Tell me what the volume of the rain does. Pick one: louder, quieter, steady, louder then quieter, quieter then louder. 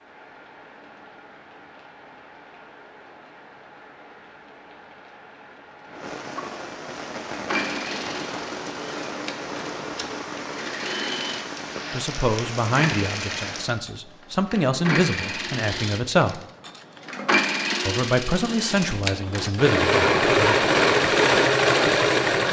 louder.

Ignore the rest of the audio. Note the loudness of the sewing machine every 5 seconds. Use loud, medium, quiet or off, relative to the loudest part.
off, quiet, quiet, medium, loud.